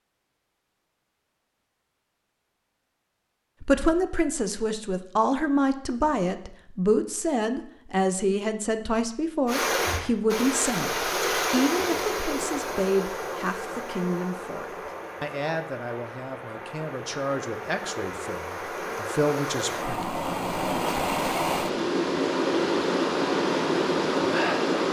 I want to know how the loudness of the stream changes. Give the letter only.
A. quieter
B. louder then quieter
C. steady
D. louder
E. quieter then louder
E.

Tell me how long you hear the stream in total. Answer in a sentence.
The stream can be heard for 15 seconds in total.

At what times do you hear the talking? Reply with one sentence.
You can hear the talking from 3.6 to 20.1 s.